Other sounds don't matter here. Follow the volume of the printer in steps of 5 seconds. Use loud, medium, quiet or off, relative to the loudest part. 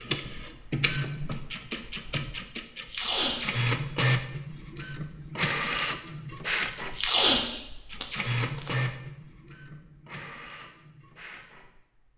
loud, loud, quiet.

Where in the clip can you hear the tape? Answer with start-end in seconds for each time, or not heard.
2.9-3.5, 6.9-8.7.